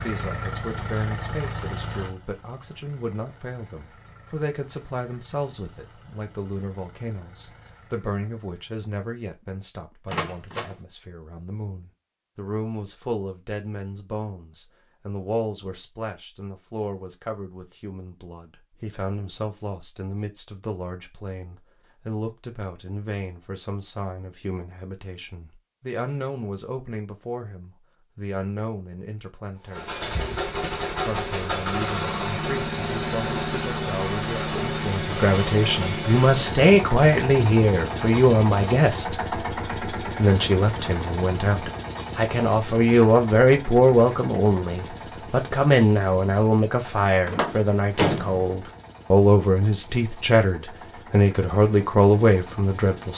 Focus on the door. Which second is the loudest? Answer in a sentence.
The loudest moment of the door is at 48 seconds.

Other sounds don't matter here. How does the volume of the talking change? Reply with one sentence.
The loudness of the talking goes up.